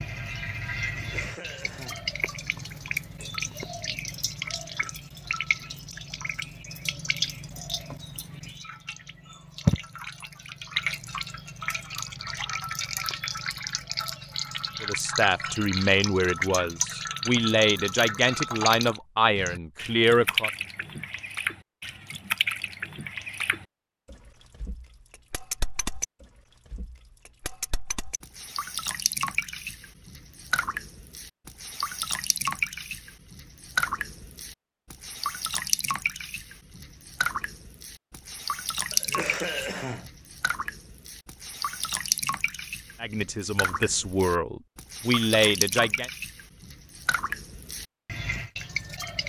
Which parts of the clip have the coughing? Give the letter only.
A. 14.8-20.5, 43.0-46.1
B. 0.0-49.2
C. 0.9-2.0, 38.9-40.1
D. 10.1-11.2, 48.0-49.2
C.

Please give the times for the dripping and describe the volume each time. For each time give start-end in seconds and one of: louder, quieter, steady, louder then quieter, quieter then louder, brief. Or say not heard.
0.0-49.2 steady.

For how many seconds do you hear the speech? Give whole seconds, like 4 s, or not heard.
9 s.